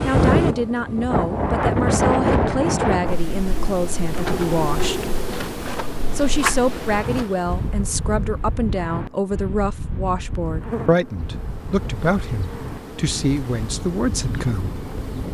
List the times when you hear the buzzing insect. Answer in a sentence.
You can hear the buzzing insect from 4.0 to 15.2 s.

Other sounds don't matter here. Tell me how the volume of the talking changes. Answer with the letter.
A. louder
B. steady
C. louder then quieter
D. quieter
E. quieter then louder
B.